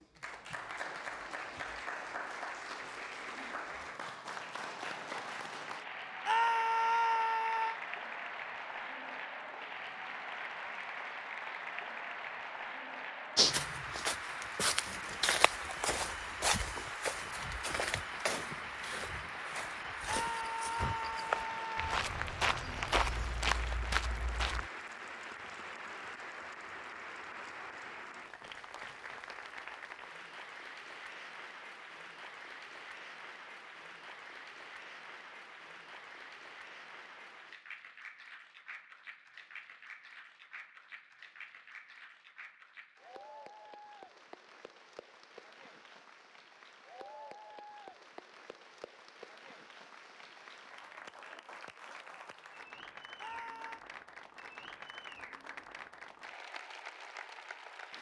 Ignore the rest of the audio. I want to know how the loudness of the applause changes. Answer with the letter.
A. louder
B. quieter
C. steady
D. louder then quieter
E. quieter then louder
B.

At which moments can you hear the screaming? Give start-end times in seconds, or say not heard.
6.2-7.8, 20.1-21.9, 53.2-53.8.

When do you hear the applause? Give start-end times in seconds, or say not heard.
0.0-57.9.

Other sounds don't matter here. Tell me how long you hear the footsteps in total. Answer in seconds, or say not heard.
11 s.